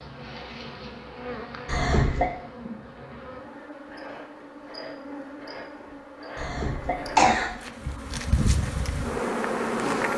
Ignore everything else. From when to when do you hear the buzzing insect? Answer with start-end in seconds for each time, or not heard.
0.0-10.1.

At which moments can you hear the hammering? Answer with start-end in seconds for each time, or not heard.
not heard.